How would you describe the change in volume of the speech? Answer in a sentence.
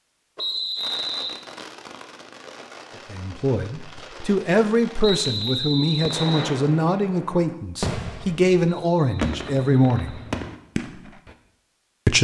The volume of the speech stays about the same.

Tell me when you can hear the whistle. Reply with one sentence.
You can hear the whistle from 0.3 to 1.4 s, from 5.0 to 6.5 s and from 8.7 to 10.3 s.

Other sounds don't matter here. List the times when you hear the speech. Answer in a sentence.
The speech can be heard from 3.1 to 10.2 s.